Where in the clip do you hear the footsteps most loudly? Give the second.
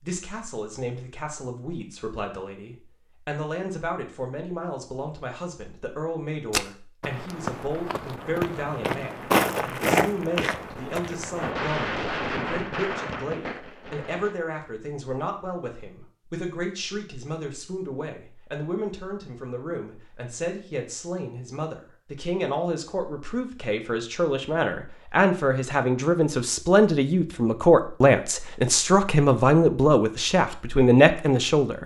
9 s.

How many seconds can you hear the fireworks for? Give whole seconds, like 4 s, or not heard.
3 s.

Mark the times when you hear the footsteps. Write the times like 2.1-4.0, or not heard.
6.5-11.5.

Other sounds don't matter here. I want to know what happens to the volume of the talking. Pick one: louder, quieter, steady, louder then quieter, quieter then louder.
louder.